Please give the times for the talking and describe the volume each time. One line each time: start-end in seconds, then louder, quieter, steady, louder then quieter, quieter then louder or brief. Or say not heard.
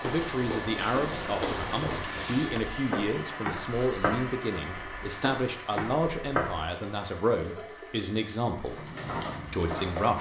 0.0-8.8 steady
9.5-10.1 brief.